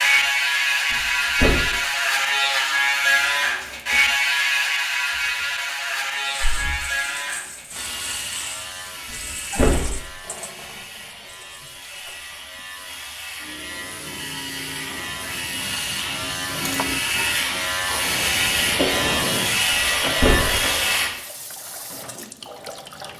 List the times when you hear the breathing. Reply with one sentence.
The breathing can be heard from 6.4 to 6.8 s and from 18.0 to 20.9 s.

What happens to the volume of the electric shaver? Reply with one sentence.
The volume of the electric shaver goes down, then up.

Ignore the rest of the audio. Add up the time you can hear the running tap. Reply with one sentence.
The running tap can be heard for 17 seconds in total.